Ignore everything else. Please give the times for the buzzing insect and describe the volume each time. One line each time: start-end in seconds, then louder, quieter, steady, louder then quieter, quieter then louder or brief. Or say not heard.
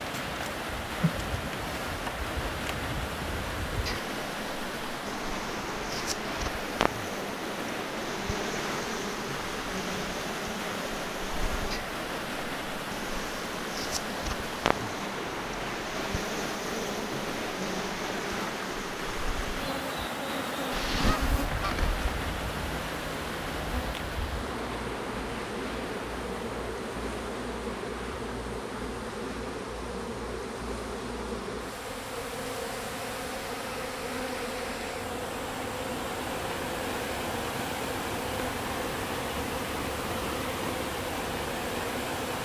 0.0-42.4 steady.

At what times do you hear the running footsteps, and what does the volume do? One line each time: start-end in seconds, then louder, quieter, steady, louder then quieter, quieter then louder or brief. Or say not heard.
not heard.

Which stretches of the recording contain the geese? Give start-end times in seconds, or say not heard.
20.7-22.0.